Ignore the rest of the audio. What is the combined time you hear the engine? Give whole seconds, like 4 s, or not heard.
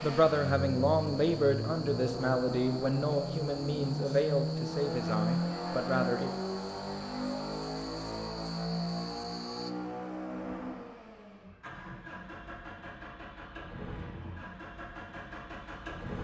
16 s.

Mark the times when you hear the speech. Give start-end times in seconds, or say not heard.
0.0-6.3.